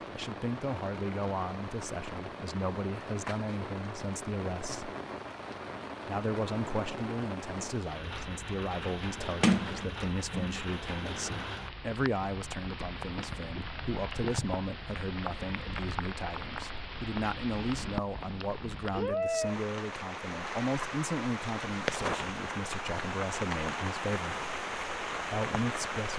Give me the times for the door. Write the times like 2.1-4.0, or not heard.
9.4-10.6.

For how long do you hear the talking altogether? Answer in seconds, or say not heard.
24 s.